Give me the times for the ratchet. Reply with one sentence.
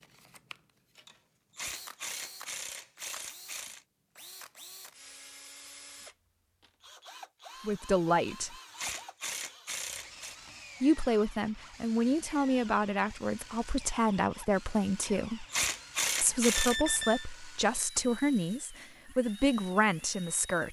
The ratchet can be heard from 1.1 to 3.9 s, from 8.2 to 10.3 s and from 15.0 to 16.8 s.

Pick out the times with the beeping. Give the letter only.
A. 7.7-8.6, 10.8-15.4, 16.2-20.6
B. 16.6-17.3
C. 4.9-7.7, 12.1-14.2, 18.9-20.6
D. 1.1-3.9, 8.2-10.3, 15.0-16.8
B.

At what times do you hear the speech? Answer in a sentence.
The speech can be heard from 7.7 to 8.6 s, from 10.8 to 15.4 s and from 16.2 to 20.6 s.